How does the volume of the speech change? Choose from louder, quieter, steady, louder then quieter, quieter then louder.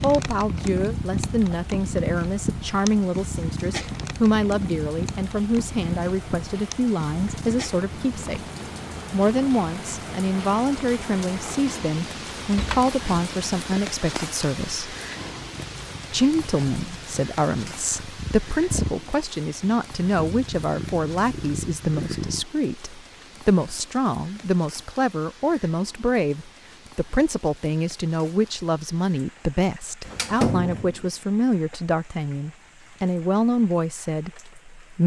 steady.